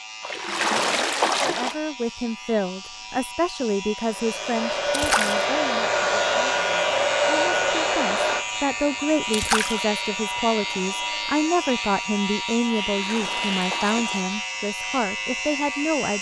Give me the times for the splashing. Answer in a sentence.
The splashing can be heard from 0.2 to 1.8 s, from 4.9 to 5.5 s, from 9.3 to 9.8 s and from 12.8 to 14.3 s.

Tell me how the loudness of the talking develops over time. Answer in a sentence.
The loudness of the talking goes down, then up.